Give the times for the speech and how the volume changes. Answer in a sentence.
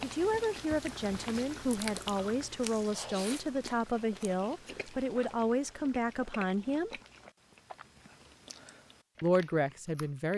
The speech can be heard from 0.0 to 7.0 s, at a steady volume; and briefly from 9.2 to 10.3 s.